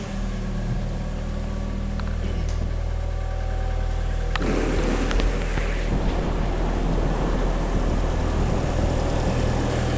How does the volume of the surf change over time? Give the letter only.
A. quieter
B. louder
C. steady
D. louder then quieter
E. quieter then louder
C.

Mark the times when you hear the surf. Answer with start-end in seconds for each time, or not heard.
4.3-9.9.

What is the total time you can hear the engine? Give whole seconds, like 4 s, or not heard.
10 s.